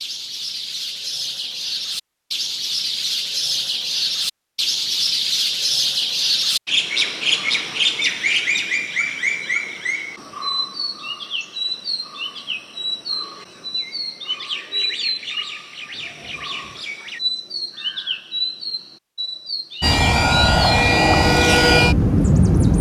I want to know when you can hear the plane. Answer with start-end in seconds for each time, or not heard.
19.8-22.7.